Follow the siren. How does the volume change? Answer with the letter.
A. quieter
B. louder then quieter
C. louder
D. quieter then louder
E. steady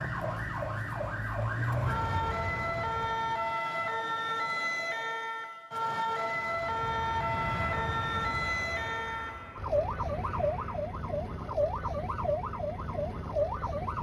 E.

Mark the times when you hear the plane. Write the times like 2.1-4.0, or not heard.
1.4-3.5, 6.5-10.9.